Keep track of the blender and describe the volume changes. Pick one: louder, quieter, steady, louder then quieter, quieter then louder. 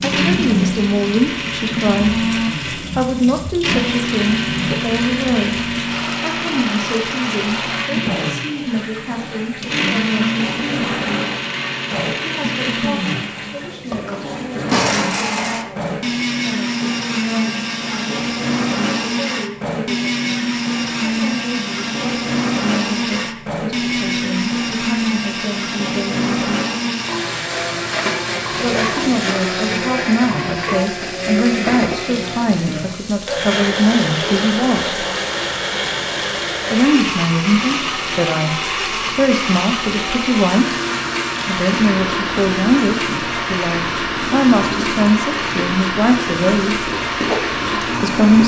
steady.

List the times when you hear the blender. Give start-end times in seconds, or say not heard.
0.0-48.4.